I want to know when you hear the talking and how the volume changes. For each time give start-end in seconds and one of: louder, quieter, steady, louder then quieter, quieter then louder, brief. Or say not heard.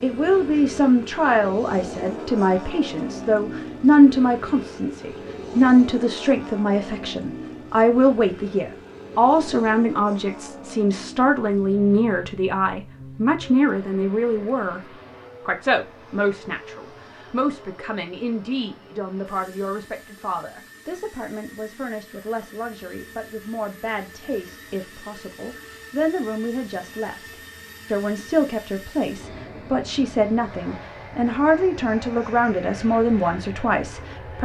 0.0-27.2 quieter
27.9-34.3 steady.